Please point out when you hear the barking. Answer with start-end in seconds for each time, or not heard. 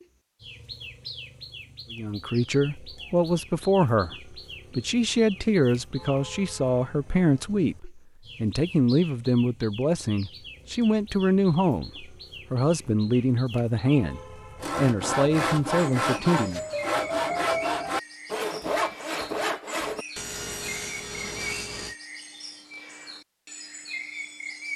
not heard.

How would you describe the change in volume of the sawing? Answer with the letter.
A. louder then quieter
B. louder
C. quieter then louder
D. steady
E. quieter
E.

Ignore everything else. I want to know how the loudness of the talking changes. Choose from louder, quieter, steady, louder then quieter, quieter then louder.
steady.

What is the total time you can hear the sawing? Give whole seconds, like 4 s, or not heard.
7 s.